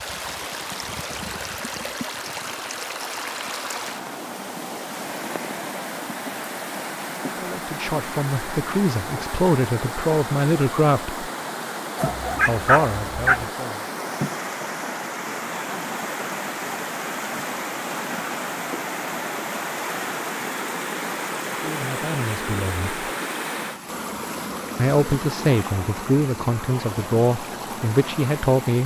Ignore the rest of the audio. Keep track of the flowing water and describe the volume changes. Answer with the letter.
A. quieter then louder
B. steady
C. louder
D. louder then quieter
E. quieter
B.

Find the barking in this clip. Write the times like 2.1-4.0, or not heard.
11.9-13.4.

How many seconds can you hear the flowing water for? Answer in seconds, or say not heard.
29 s.